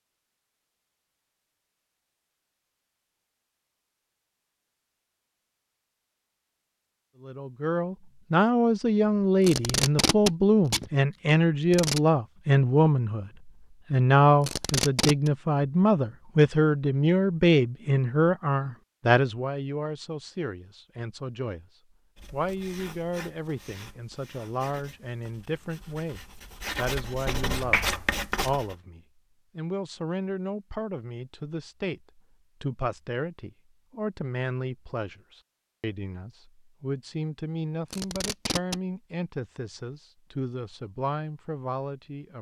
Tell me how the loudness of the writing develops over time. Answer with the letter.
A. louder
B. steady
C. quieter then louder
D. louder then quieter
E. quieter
C.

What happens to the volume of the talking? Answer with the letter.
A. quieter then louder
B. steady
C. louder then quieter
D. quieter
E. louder
D.